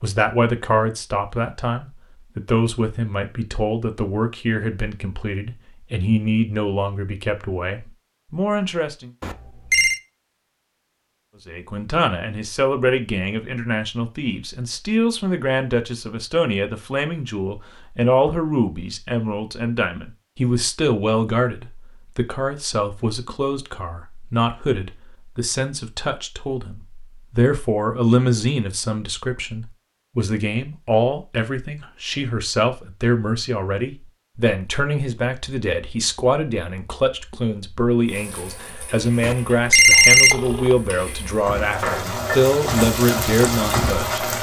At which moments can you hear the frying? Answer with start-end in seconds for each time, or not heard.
38.0-44.3.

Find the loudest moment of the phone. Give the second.
40 s.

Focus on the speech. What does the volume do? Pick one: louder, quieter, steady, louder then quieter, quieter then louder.
steady.